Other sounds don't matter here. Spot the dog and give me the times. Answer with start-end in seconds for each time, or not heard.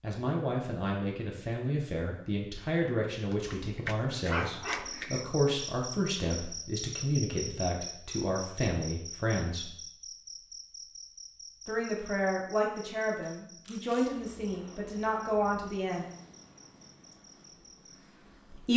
3.3-5.2.